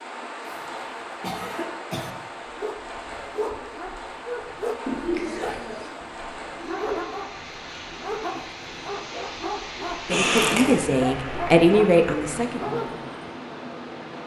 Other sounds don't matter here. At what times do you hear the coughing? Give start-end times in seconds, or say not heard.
0.5-2.1, 4.8-5.9, 10.1-10.8.